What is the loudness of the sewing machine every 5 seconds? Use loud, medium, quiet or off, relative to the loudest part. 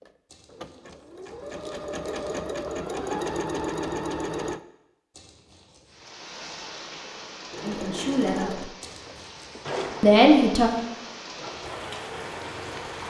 loud, loud, medium.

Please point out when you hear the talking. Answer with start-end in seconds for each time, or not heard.
7.6-8.7, 10.0-10.7.